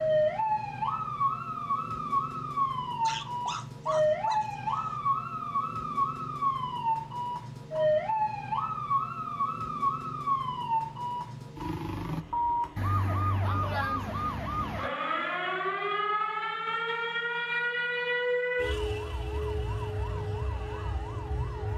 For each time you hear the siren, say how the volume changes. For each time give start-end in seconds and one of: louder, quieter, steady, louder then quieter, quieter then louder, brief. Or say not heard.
0.0-21.7 steady.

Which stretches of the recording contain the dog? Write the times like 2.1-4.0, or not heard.
3.0-5.0.